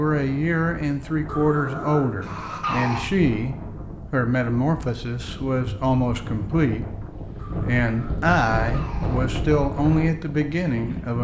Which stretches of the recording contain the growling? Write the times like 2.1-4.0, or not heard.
1.2-3.0, 7.3-9.2.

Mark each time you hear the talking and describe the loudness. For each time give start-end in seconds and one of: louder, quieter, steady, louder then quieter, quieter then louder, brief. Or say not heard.
0.0-11.1 steady.